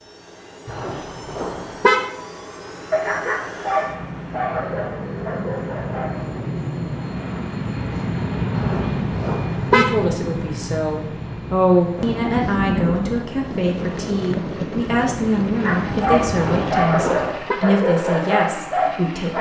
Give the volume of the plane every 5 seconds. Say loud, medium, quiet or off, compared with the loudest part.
medium, loud, medium, medium.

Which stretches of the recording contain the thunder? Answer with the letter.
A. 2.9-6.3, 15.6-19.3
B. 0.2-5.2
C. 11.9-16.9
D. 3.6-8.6
C.